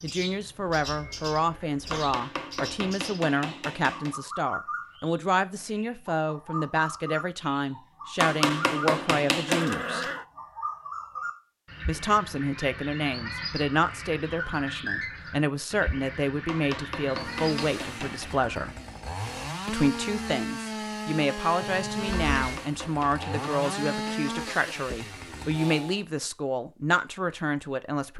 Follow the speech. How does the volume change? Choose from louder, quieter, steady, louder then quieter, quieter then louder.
steady.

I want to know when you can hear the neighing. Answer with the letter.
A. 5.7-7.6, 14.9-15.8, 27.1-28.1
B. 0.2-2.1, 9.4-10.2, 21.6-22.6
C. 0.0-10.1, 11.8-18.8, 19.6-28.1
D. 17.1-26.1
B.